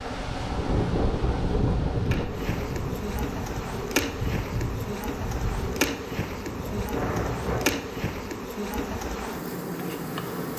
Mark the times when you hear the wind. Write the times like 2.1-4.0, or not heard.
0.0-7.7.